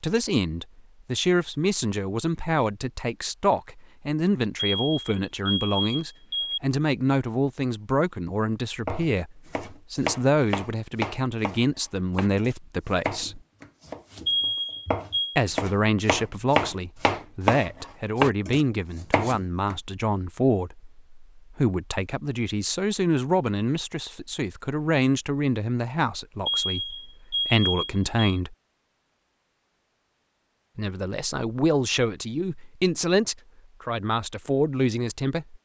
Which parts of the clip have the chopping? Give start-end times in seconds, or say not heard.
8.8-19.8.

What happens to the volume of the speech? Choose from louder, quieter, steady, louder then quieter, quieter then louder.
steady.